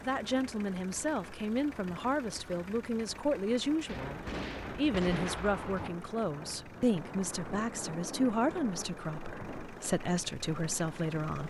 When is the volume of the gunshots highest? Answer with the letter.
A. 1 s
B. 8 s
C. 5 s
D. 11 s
C.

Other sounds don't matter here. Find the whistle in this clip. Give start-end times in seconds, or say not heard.
not heard.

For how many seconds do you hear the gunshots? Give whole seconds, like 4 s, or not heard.
2 s.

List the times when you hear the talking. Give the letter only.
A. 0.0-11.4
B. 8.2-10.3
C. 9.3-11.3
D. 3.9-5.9
A.